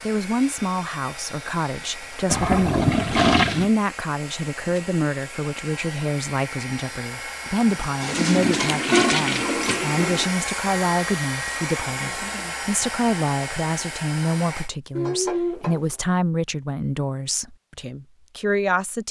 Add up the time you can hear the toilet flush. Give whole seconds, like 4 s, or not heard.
5 s.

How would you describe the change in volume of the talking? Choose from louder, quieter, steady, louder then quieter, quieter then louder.
steady.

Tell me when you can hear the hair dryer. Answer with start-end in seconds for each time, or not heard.
0.0-14.7.